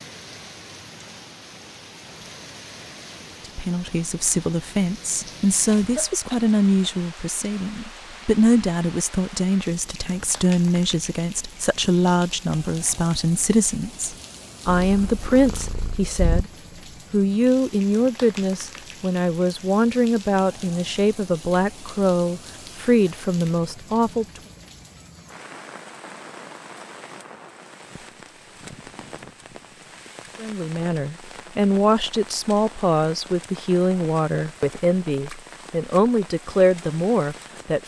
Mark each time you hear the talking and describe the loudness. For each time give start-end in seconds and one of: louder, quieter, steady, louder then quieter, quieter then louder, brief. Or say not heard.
3.5-16.5 steady
17.1-24.4 steady
30.4-37.8 steady.